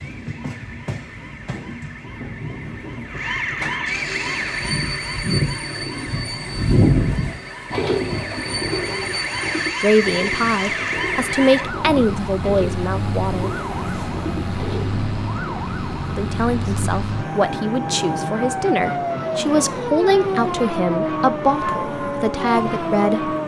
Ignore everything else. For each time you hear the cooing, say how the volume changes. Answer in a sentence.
You can hear the cooing from 4.2 to 15.6 s, getting louder then quieter.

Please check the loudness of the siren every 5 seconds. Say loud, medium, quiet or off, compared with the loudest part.
medium, medium, loud, loud, loud.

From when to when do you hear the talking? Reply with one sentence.
The talking can be heard from 9.8 to 13.5 s and from 16.1 to 23.4 s.